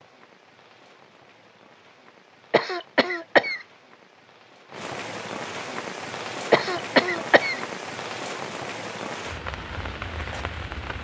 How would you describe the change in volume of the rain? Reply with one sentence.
The loudness of the rain goes up.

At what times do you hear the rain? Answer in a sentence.
You can hear the rain from 0.0 to 10.9 s.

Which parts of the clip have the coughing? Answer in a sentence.
The coughing can be heard from 2.5 to 3.6 s and from 6.5 to 7.6 s.